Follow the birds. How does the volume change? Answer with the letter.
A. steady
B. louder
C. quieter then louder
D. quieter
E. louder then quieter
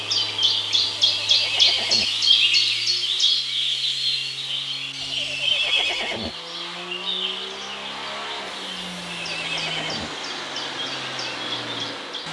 D.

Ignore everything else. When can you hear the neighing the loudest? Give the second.
6 s.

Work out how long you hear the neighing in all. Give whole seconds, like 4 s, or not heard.
4 s.